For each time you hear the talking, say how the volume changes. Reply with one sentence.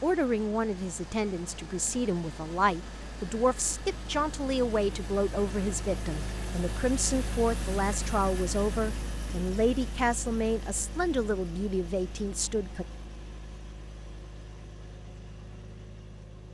The talking can be heard from 0.0 to 12.8 s, at a steady volume.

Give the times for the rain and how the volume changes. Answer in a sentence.
You can't hear the rain here.